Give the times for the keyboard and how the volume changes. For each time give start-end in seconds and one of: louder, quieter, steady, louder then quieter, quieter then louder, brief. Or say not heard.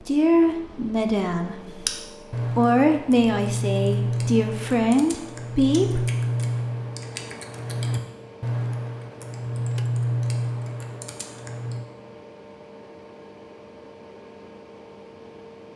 1.6-11.8 steady.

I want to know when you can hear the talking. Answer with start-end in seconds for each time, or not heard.
0.0-1.8, 2.5-6.0.